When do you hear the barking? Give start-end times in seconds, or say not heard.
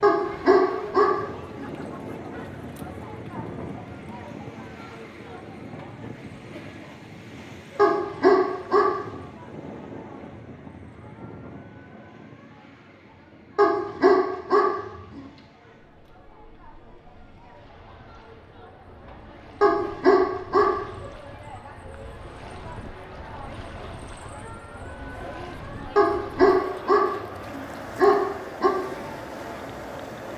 0.0-1.6, 7.8-8.9, 13.6-15.2, 19.6-20.8, 25.9-28.7.